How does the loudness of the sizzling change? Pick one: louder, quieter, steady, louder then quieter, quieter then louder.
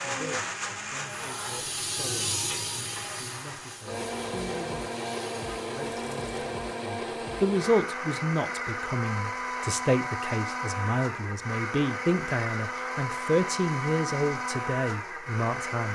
louder then quieter.